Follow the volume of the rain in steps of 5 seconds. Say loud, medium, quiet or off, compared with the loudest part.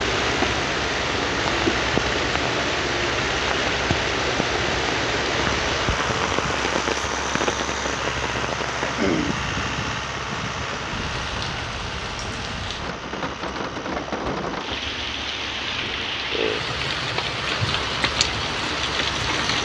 loud, loud, medium, loud.